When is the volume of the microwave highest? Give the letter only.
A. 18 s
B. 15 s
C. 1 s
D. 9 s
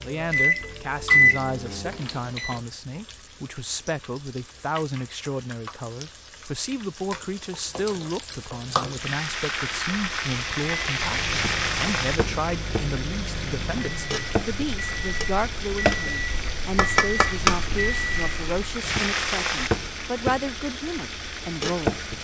C.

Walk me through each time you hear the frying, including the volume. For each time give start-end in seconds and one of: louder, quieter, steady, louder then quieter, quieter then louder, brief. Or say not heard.
0.0-22.1 louder.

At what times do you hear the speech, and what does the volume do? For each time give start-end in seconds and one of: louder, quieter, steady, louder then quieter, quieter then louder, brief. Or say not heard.
0.0-21.9 steady.